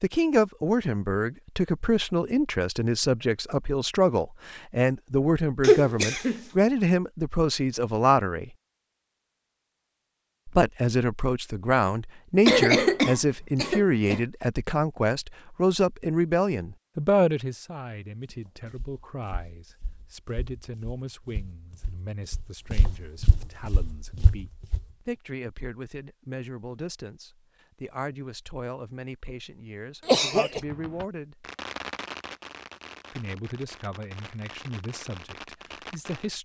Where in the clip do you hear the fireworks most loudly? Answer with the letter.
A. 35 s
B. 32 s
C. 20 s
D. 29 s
B.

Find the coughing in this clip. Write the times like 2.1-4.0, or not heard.
5.6-6.4, 12.4-14.2, 30.1-30.6.